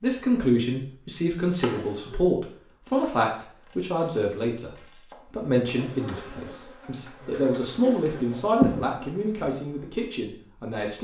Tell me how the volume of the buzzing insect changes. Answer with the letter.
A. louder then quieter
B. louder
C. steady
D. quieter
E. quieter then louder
A.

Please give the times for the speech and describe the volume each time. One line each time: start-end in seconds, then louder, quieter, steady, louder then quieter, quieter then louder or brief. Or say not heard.
0.0-4.7 steady
5.3-10.9 louder then quieter.